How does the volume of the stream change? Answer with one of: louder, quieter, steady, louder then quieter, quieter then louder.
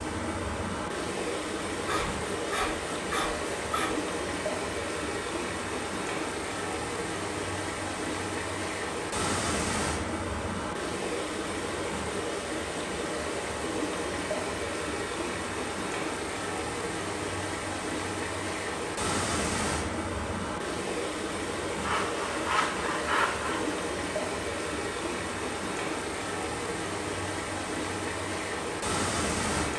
steady.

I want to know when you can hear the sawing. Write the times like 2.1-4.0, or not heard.
1.9-4.0, 21.8-23.8.